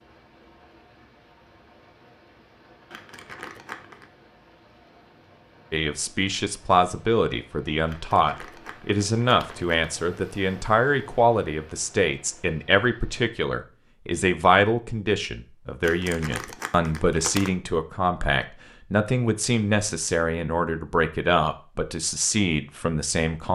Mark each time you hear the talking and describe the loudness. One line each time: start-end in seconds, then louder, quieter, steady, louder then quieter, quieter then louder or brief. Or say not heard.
5.7-23.5 steady.